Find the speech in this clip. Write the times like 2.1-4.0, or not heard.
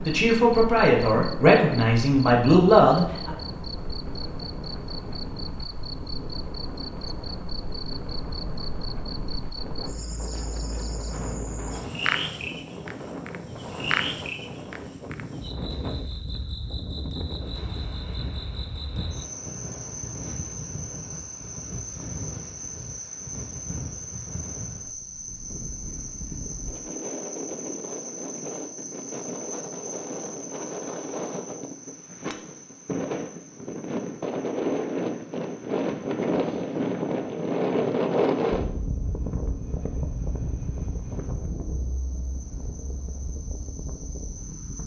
0.0-3.4.